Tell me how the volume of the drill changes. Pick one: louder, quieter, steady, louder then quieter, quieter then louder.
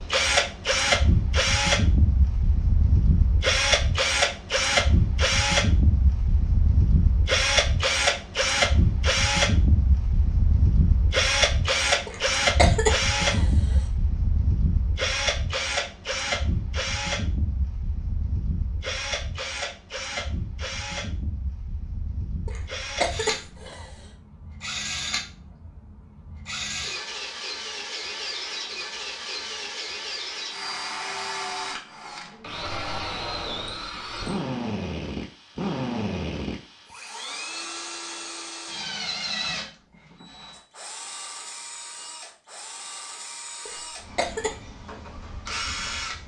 quieter.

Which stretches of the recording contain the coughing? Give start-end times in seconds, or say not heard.
12.1-13.8, 22.4-23.9, 43.6-44.5.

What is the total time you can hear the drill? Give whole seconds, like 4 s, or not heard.
46 s.